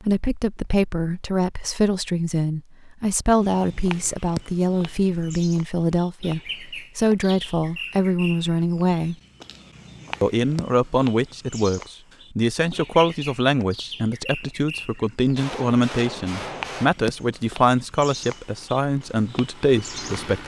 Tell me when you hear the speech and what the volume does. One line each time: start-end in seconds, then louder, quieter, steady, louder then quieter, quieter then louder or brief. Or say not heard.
0.0-9.2 steady
10.2-20.4 steady.